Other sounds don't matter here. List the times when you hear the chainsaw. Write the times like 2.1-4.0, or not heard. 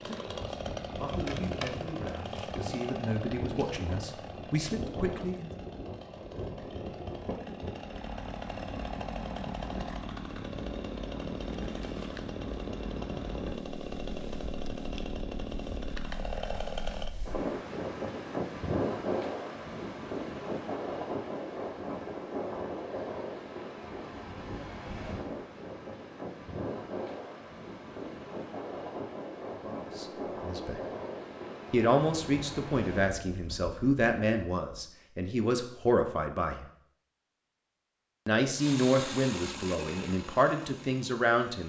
0.0-17.1, 38.5-41.6.